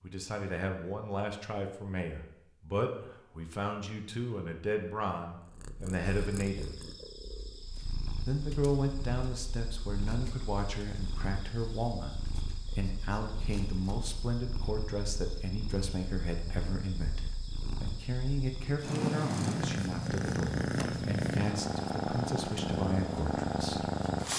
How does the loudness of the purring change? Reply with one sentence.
The loudness of the purring goes up.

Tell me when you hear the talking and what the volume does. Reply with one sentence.
You can hear the talking from 0.0 to 6.8 s, at a steady volume; and from 8.2 to 23.9 s, at a steady volume.